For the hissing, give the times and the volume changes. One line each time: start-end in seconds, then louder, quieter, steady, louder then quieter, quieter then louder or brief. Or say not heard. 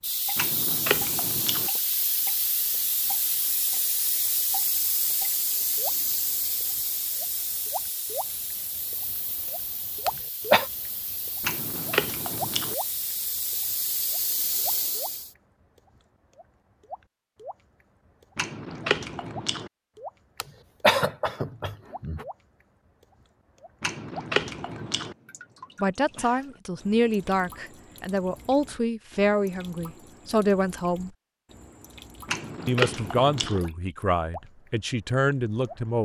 0.0-15.3 quieter then louder.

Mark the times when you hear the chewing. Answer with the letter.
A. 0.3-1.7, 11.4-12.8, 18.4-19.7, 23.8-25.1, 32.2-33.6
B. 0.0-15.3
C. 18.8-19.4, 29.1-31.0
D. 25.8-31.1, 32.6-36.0
A.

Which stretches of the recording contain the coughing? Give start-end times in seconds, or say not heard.
10.1-10.7, 20.4-22.2.